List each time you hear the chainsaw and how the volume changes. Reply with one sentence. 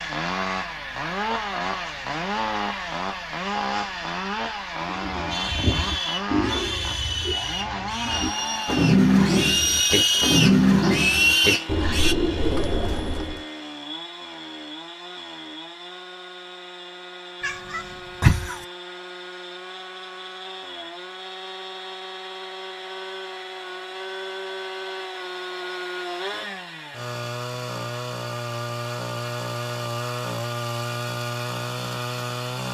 You can hear the chainsaw from 0.0 to 32.6 s, getting quieter then louder.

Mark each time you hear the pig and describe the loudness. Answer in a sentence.
The pig can be heard from 5.3 to 12.2 s, getting louder.